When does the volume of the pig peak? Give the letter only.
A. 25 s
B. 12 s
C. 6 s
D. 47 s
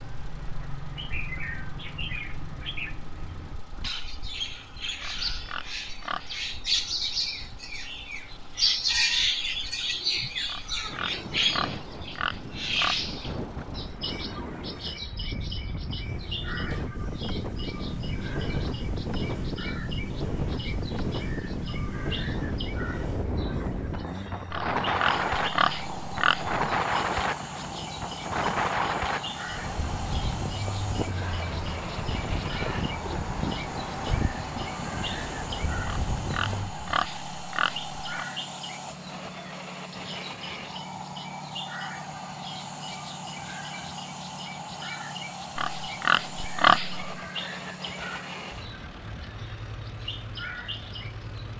D.